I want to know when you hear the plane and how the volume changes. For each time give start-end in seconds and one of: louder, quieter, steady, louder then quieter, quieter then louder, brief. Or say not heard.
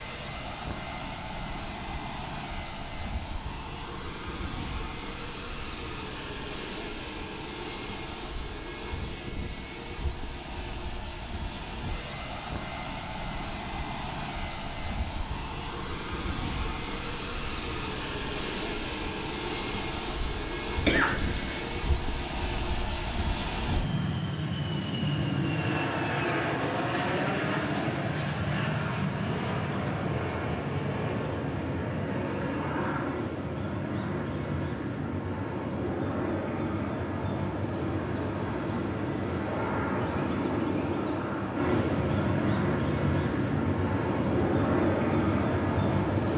0.0-46.3 louder.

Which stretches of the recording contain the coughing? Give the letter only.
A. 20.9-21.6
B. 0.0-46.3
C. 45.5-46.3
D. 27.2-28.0
A.